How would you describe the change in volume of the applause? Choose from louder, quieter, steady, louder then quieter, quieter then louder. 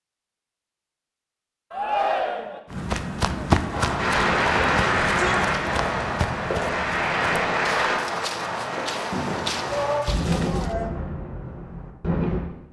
quieter then louder.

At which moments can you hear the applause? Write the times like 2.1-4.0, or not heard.
4.0-8.0.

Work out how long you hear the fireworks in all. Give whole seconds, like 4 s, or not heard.
9 s.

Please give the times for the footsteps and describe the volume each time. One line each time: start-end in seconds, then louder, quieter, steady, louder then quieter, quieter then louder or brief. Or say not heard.
2.7-10.8 quieter.